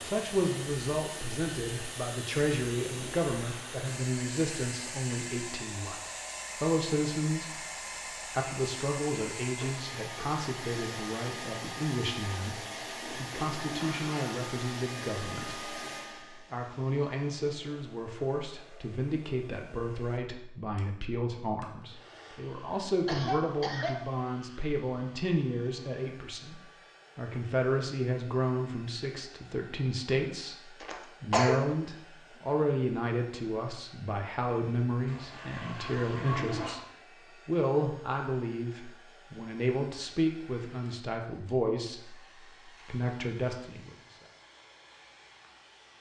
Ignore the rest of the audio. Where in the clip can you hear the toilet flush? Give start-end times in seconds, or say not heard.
13.0-14.4, 35.0-36.8.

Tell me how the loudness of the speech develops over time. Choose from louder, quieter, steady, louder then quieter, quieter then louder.
steady.